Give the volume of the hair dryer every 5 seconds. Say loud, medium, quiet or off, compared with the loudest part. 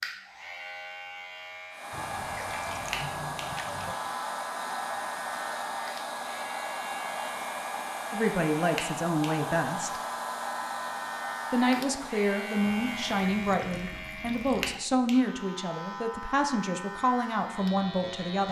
loud, loud, loud, off.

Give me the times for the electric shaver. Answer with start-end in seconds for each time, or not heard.
0.0-18.4.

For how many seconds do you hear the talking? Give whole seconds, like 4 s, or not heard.
9 s.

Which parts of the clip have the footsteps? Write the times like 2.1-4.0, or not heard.
not heard.